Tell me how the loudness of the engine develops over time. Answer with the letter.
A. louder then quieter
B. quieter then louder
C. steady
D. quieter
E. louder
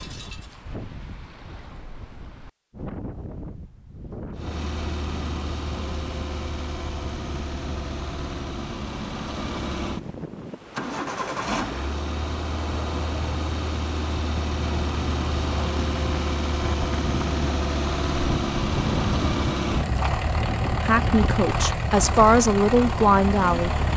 E.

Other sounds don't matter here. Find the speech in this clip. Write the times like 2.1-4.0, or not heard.
20.8-23.8.